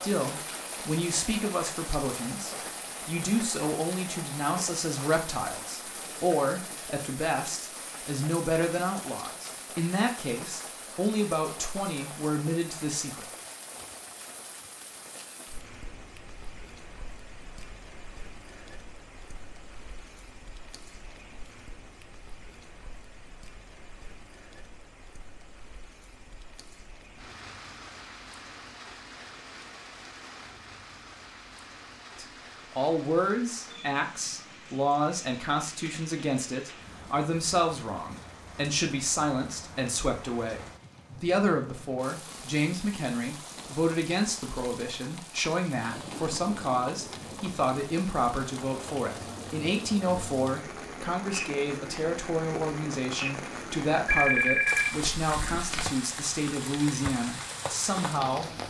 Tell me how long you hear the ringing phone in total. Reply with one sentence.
The ringing phone can be heard for 2 seconds in total.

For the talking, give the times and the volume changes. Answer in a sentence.
The talking can be heard from 0.0 to 13.3 s, at a steady volume; and from 32.1 to 58.5 s, at a steady volume.